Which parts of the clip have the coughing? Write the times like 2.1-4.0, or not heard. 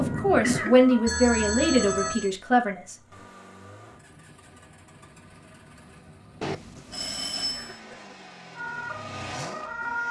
0.2-0.8, 7.5-8.2.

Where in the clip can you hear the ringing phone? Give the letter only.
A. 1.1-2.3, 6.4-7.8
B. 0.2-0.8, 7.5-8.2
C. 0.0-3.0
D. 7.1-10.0
A.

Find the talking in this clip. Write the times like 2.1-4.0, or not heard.
0.0-3.0.